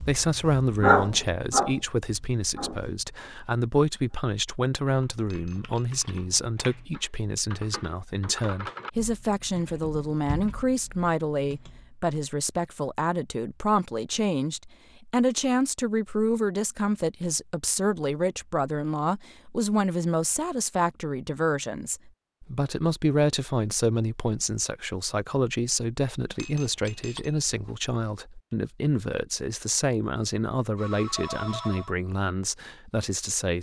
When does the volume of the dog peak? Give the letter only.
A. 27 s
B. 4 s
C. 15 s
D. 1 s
D.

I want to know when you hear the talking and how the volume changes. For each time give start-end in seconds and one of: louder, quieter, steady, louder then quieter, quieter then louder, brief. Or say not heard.
0.0-33.5 steady.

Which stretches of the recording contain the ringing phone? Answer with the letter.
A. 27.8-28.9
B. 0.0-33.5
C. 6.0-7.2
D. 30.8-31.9
D.